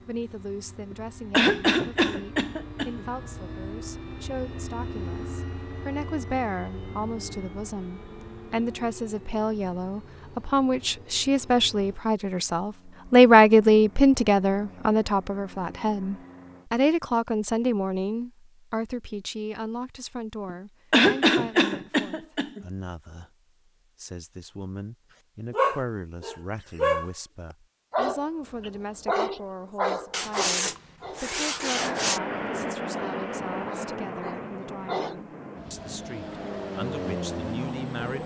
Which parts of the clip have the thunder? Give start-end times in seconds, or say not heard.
not heard.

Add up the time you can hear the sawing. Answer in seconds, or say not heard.
2 s.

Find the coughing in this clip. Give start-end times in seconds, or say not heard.
0.9-3.0, 20.4-22.6.